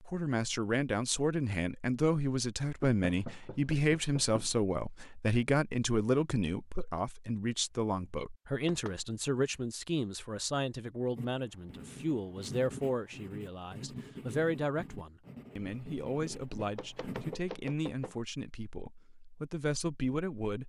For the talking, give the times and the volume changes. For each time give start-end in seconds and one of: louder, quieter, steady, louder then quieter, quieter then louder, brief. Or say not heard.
0.0-20.6 quieter.